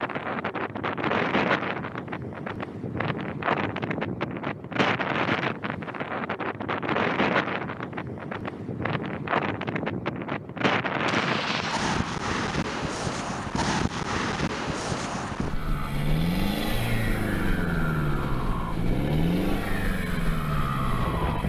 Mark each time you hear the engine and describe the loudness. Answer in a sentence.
You can hear the engine from 15.4 to 21.4 s, at a steady volume.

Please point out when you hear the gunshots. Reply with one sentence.
You can hear the gunshots from 11.1 to 12.1 s.